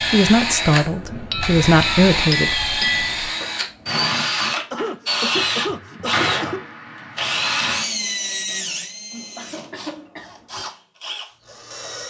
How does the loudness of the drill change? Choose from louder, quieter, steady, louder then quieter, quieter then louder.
quieter.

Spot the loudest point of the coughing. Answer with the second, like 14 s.
6 s.